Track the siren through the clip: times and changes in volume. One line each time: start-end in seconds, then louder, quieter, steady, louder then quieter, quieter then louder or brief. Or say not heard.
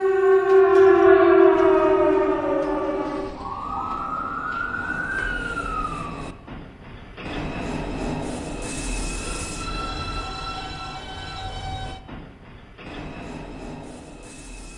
0.0-6.2 quieter.